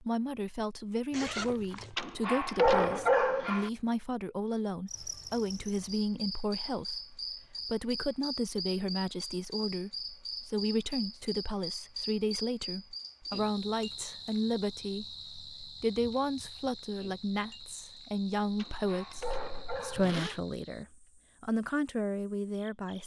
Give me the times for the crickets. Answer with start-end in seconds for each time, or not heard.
4.8-23.0.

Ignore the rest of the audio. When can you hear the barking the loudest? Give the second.
3 s.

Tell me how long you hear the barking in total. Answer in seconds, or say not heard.
3 s.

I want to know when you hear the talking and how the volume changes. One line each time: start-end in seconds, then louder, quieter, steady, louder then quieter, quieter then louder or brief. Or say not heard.
0.0-23.0 steady.